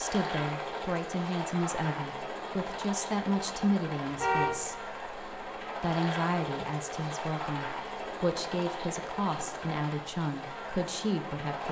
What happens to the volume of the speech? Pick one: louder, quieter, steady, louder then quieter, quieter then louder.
steady.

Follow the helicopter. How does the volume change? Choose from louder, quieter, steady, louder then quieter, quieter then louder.
steady.